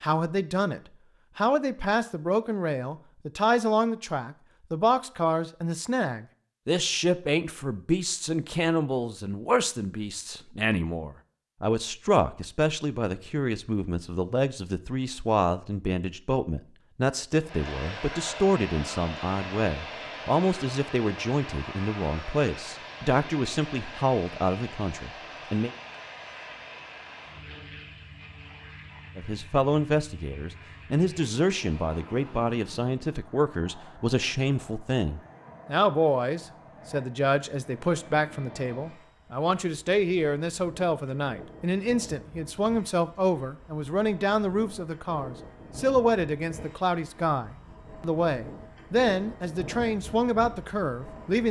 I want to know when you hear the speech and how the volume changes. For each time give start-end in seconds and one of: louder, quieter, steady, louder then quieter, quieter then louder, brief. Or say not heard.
0.0-25.7 steady
29.1-51.4 steady.